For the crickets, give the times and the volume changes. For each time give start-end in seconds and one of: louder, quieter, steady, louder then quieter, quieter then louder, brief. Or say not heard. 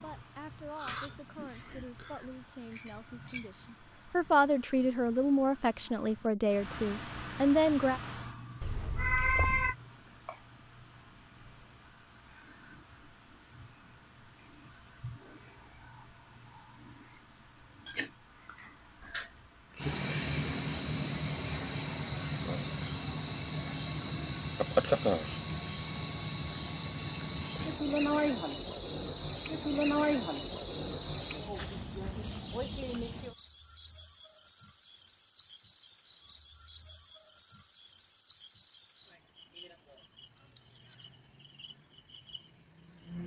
0.0-43.2 steady.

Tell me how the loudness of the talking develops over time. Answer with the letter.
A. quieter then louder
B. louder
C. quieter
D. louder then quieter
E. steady
B.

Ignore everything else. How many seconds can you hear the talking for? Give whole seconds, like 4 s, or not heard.
8 s.